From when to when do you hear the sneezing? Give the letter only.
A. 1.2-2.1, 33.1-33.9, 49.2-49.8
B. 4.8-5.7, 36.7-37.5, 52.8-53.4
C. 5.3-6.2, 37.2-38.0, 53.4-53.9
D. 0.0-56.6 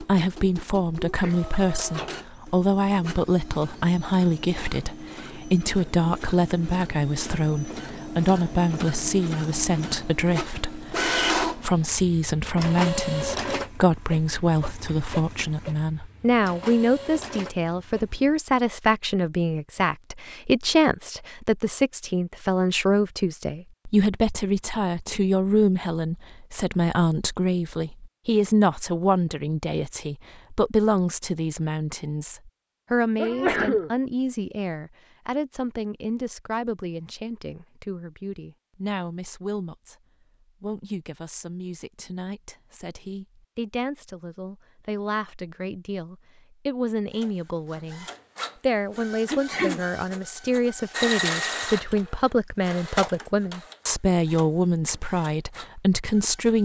A.